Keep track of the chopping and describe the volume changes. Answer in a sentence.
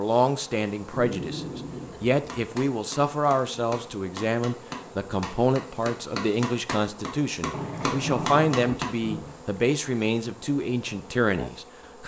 The volume of the chopping goes up.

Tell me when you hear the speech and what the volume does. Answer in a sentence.
The speech can be heard from 0.0 to 12.0 s, at a steady volume.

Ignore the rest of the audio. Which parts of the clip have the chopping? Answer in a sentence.
The chopping can be heard from 2.2 to 8.9 s.